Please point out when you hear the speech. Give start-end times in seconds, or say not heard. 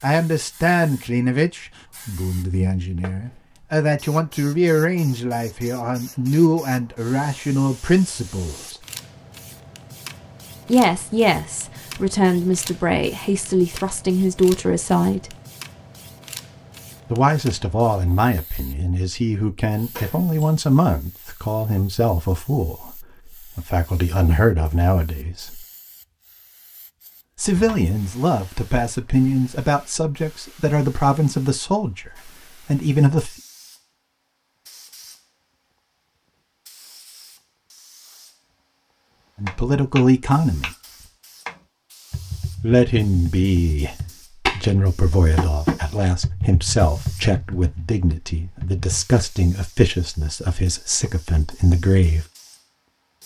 0.0-8.8, 10.7-15.3, 17.1-25.6, 27.4-33.4, 39.4-40.7, 42.6-52.2.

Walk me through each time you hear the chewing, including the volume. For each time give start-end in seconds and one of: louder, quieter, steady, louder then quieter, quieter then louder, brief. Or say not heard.
not heard.